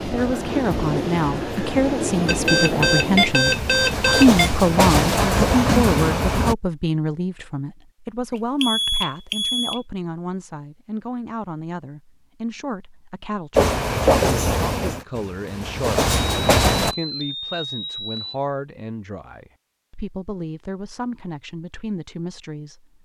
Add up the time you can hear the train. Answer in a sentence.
You can hear the train for 10 seconds altogether.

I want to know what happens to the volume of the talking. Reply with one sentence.
The volume of the talking goes down.